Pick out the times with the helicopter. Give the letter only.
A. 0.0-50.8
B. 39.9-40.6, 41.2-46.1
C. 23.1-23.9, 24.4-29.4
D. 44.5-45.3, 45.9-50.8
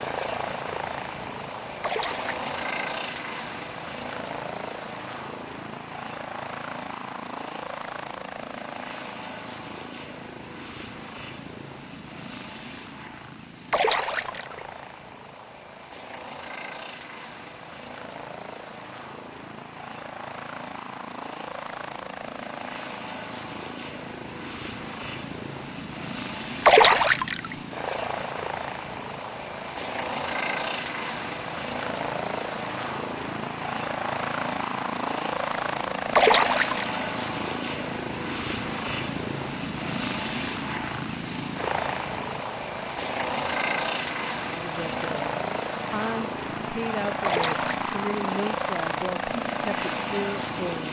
A.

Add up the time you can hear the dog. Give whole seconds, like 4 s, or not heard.
not heard.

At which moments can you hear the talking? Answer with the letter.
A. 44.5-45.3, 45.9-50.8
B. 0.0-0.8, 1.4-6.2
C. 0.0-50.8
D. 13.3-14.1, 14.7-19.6
A.